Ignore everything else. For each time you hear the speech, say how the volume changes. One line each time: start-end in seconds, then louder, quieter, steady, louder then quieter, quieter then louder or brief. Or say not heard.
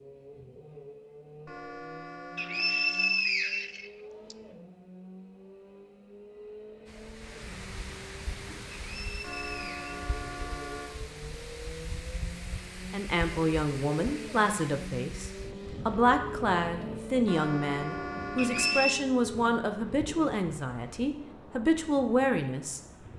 12.9-22.8 steady.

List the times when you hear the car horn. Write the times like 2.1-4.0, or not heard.
1.4-3.2, 9.2-11.0, 17.2-18.9.